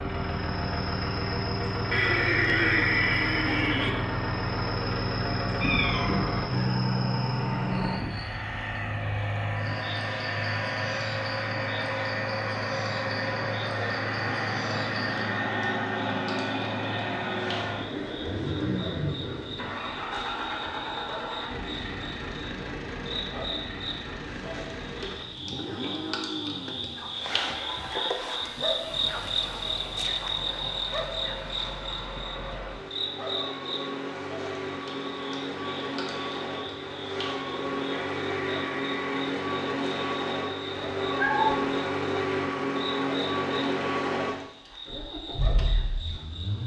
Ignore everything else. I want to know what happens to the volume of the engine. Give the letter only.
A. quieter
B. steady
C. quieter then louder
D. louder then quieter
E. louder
C.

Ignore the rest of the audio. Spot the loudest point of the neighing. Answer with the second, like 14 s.
3 s.